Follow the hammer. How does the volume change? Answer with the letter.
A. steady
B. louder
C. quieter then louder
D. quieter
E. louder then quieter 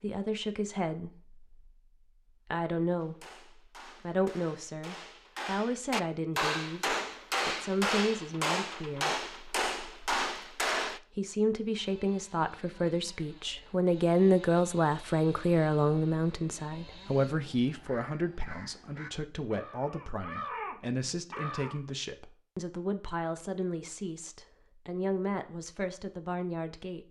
B.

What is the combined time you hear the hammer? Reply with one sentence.
You can hear the hammer for 8 seconds altogether.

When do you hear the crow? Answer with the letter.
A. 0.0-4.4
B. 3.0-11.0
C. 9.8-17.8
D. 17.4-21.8
D.